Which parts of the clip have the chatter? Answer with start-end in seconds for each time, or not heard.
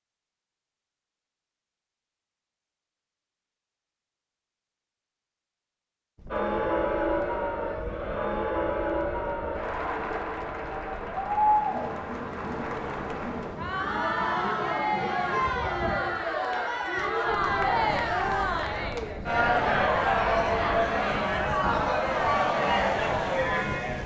6.3-24.0.